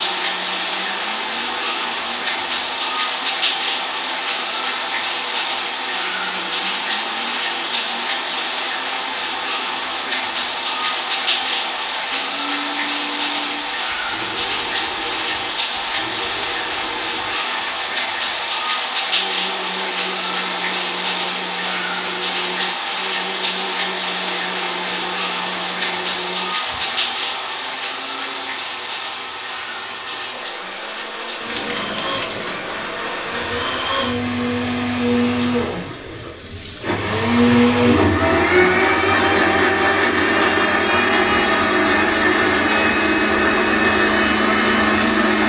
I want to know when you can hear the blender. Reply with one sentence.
You can hear the blender from 0.0 to 45.4 s.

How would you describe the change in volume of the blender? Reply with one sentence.
The volume of the blender goes up.